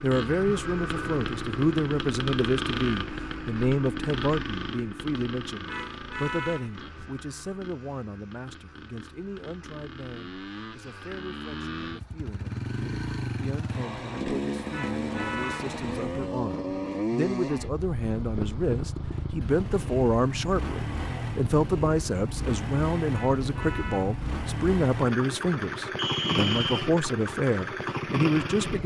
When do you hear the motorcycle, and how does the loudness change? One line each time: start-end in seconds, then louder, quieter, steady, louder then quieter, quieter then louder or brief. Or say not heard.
0.0-28.8 quieter then louder.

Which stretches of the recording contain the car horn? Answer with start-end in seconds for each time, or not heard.
5.7-7.1, 14.7-15.8, 23.1-24.2.